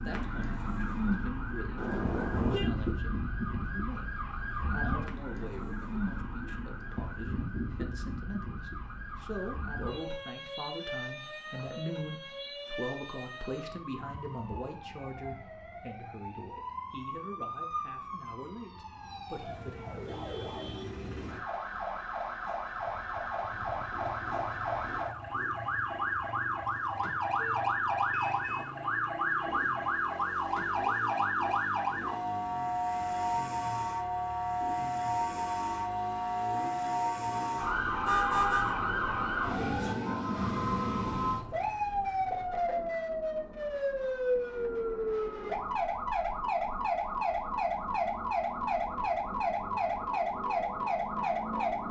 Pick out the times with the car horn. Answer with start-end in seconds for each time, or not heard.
1.8-2.7, 27.4-28.7, 38.0-38.8.